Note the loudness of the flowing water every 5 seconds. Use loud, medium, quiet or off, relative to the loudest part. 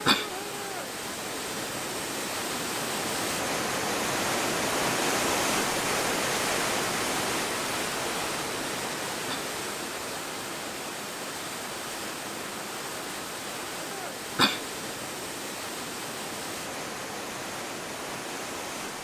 loud, loud, medium, medium.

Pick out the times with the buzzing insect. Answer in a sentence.
The buzzing insect can't be heard in this clip.